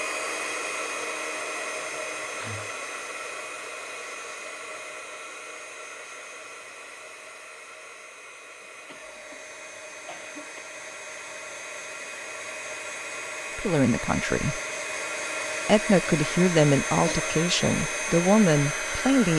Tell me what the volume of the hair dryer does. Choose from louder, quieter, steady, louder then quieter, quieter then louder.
quieter then louder.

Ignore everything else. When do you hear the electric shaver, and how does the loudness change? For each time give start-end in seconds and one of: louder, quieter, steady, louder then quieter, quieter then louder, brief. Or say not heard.
not heard.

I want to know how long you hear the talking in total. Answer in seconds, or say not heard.
5 s.